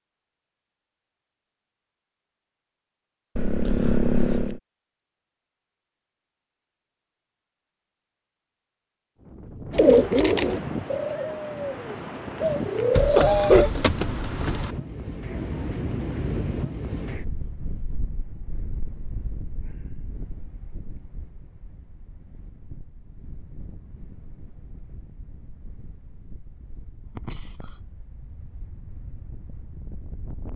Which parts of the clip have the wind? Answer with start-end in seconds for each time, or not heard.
9.2-30.5.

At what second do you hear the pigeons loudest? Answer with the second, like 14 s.
10 s.